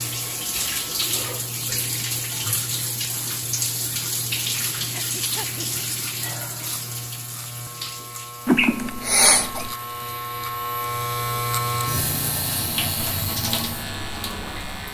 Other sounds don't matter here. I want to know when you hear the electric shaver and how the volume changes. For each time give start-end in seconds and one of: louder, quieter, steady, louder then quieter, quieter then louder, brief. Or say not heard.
0.0-14.8 louder.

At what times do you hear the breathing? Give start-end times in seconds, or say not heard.
4.9-5.7.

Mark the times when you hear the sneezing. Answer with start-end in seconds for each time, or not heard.
8.4-9.8.